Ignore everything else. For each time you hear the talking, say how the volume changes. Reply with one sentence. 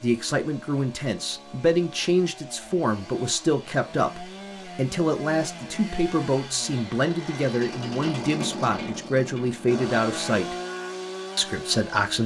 The talking can be heard from 0.0 to 10.6 s, at a steady volume; and briefly from 11.3 to 12.2 s.